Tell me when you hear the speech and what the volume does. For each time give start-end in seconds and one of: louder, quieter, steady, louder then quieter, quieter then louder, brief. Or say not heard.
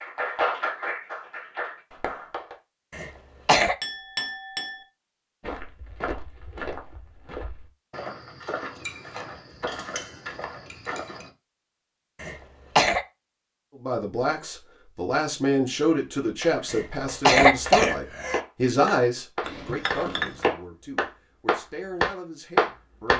13.8-23.1 quieter.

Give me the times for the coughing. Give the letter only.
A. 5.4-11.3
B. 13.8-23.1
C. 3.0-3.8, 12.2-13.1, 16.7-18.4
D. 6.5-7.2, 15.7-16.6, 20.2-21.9
C.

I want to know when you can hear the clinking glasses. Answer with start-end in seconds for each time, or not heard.
3.8-4.8, 8.8-11.3, 19.4-20.5.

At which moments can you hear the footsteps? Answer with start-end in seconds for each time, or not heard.
5.4-11.3.